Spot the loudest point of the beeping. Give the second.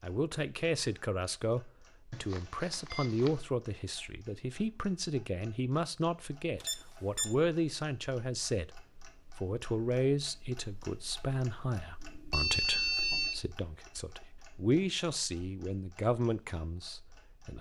13 s.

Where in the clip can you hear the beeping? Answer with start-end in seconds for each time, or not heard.
2.1-3.4, 6.6-7.3, 12.0-13.4.